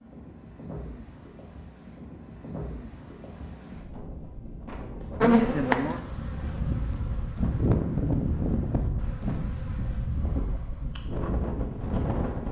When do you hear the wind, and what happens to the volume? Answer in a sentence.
You can hear the wind from 0.0 to 12.4 s, getting louder.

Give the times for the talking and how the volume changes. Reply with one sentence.
The talking can't be heard in this clip.